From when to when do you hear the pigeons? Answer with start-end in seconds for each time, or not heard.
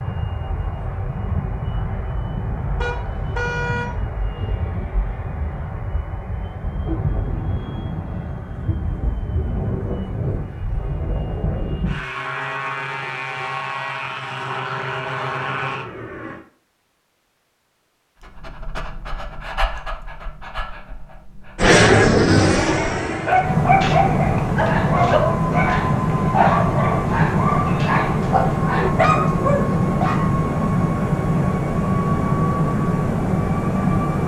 not heard.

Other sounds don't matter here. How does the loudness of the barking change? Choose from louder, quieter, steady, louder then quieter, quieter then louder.
louder.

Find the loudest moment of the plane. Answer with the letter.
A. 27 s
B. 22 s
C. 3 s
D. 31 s
B.